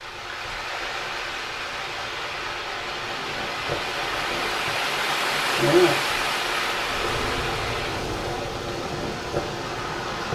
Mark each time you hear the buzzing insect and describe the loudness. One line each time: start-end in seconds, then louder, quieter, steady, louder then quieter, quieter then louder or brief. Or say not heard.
0.0-10.3 louder then quieter.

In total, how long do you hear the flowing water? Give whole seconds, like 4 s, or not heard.
10 s.